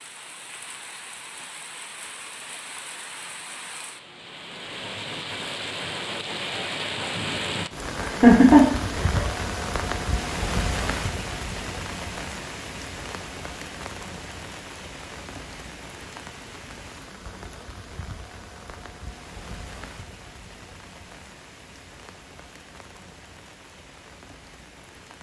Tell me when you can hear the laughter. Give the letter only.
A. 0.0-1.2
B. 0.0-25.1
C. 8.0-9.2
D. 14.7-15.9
C.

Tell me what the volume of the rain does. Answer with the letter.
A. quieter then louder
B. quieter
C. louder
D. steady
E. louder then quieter
E.